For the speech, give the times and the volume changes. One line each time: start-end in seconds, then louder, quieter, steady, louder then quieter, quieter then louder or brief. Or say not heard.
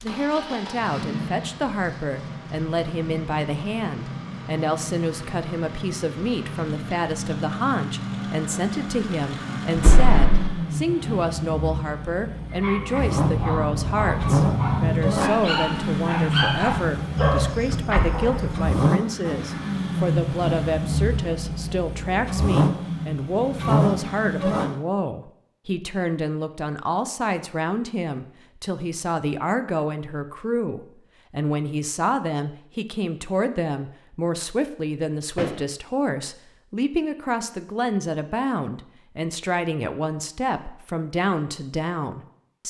0.0-42.6 steady.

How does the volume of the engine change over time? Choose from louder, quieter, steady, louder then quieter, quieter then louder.
louder.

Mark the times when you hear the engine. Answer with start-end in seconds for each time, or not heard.
0.0-24.8.